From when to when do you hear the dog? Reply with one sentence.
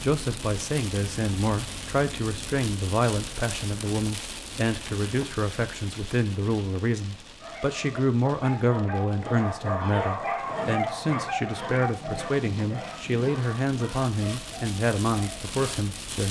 The dog can be heard from 7.3 to 15.8 s.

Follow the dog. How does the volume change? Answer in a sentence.
The volume of the dog goes up, then down.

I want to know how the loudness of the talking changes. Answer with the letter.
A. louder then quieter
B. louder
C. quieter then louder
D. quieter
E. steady
E.